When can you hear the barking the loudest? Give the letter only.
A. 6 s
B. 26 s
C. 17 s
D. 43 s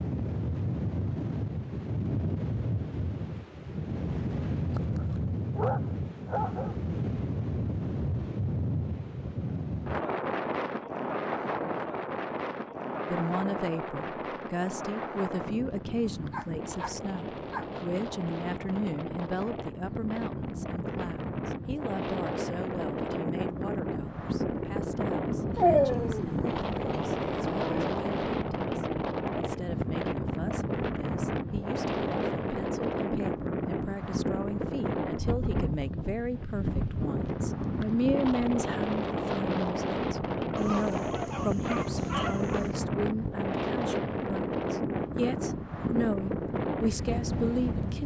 B.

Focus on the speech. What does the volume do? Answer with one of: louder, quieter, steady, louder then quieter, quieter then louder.
quieter then louder.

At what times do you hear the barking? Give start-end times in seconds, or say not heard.
4.8-6.8, 16.3-17.8, 25.6-27.9, 40.5-42.7.